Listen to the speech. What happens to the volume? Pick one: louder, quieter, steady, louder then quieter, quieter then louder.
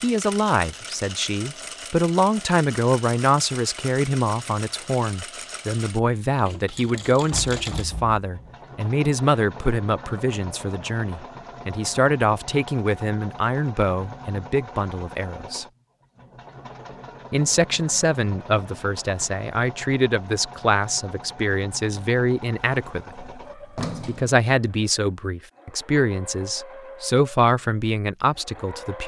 steady.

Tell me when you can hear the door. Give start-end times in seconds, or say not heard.
7.3-8.6, 23.2-24.3.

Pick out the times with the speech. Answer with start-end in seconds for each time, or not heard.
0.0-15.7, 17.3-23.2, 24.1-29.0.